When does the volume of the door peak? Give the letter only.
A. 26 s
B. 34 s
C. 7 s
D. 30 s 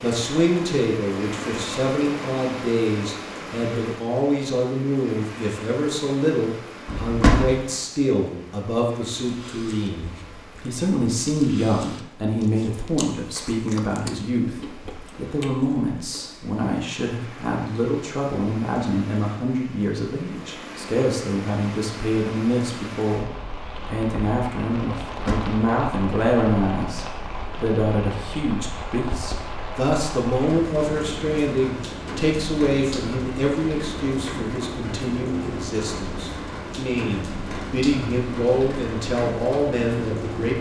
C.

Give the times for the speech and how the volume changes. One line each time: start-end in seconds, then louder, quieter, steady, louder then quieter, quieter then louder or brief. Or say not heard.
0.0-40.5 steady.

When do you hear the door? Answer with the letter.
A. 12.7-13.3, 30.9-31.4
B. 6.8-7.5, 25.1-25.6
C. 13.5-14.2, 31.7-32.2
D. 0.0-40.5
B.